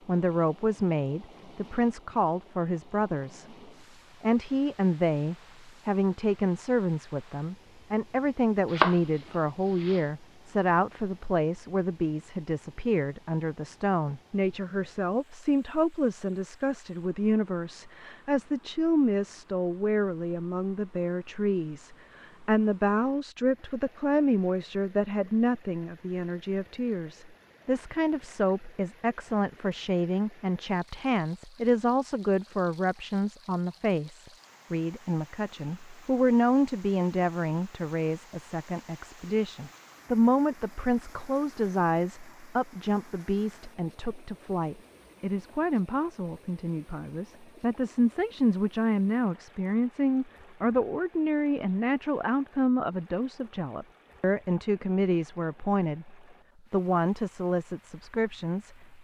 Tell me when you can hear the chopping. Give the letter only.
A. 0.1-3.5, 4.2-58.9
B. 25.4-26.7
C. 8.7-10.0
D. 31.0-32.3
C.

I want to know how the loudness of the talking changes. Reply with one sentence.
The loudness of the talking stays about the same.